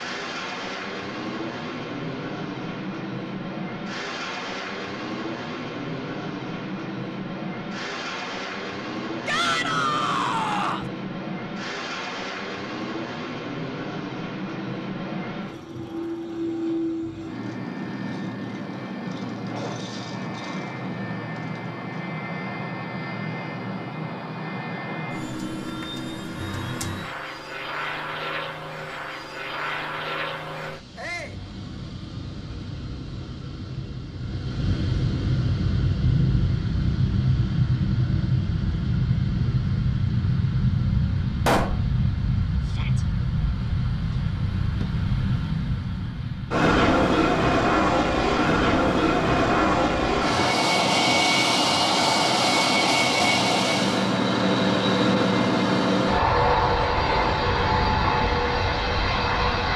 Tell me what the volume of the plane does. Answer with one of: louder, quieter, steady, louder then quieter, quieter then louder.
louder.